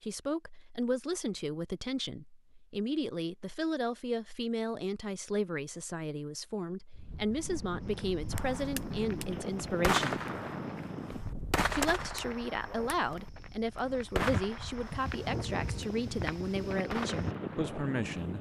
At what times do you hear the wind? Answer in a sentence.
The wind can be heard from 6.9 to 18.3 s.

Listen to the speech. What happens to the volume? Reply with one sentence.
The volume of the speech stays about the same.